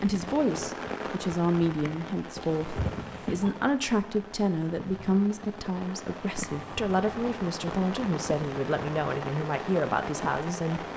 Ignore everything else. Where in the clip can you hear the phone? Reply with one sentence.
The phone can be heard from 2.4 to 3.5 s and from 6.5 to 7.5 s.